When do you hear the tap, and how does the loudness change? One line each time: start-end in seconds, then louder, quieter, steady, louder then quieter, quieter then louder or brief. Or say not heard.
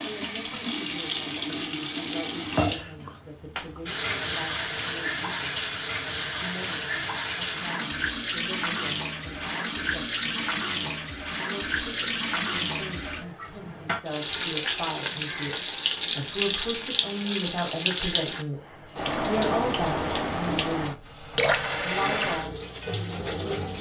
0.0-23.7 steady.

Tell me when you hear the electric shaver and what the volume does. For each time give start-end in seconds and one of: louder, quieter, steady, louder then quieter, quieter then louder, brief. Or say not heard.
not heard.